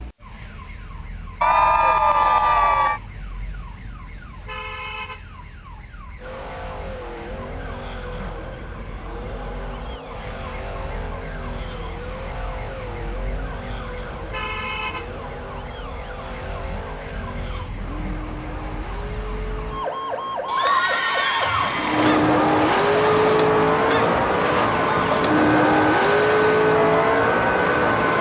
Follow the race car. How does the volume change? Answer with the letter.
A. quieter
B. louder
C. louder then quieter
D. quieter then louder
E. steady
B.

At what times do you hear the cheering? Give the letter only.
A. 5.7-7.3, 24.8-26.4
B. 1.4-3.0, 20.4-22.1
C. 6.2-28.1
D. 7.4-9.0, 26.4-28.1
B.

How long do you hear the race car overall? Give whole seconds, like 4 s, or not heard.
22 s.